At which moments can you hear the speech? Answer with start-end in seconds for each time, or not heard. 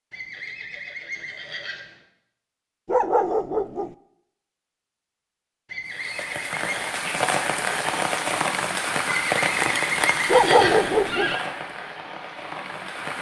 not heard.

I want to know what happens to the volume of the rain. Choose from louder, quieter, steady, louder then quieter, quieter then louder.
quieter.